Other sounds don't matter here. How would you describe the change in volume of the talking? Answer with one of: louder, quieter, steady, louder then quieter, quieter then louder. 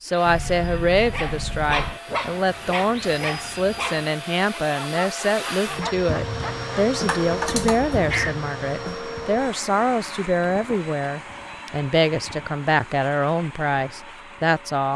steady.